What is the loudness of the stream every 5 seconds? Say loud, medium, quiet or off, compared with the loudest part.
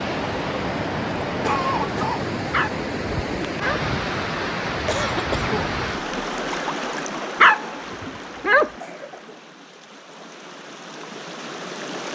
loud, loud, medium.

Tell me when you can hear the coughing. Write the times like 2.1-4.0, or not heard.
1.2-2.2, 4.8-5.8, 8.8-9.4.